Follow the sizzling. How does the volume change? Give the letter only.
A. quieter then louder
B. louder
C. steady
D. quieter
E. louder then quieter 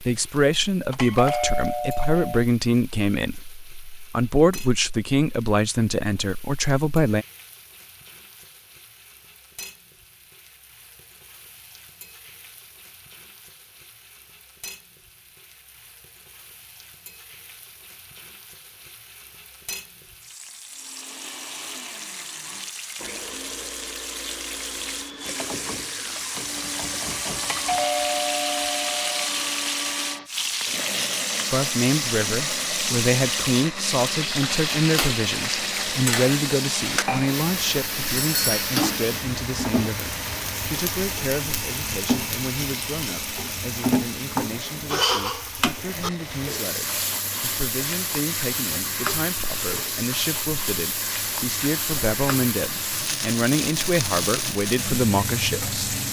B.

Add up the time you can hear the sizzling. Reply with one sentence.
The sizzling can be heard for 56 seconds in total.